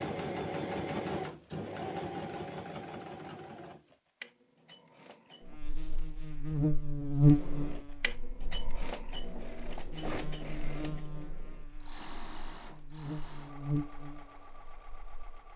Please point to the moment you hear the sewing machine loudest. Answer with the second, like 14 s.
1 s.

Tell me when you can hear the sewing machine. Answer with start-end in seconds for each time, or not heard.
0.0-5.6, 7.3-15.5.